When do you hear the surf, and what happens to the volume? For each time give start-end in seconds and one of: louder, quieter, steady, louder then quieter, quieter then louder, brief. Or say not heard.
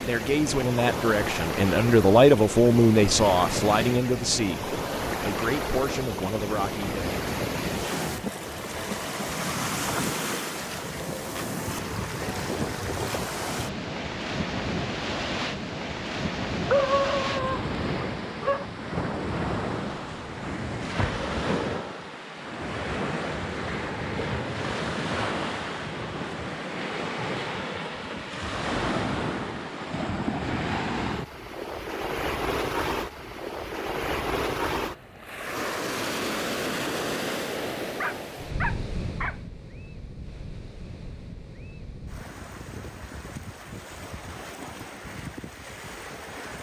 0.0-46.5 quieter.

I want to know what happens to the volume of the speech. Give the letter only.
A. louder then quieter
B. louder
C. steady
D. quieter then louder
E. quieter
A.